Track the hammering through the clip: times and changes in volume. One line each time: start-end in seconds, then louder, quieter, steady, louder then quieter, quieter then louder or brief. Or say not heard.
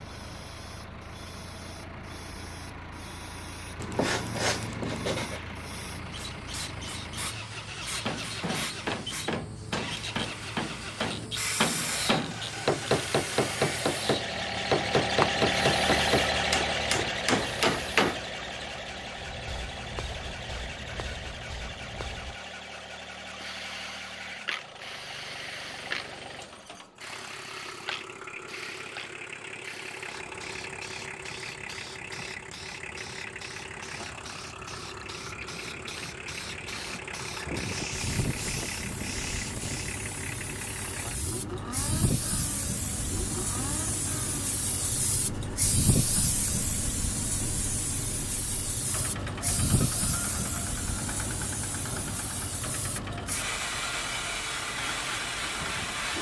7.8-18.2 louder.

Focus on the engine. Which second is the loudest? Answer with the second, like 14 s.
16 s.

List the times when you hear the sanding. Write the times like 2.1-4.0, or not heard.
3.8-5.4, 37.5-40.0.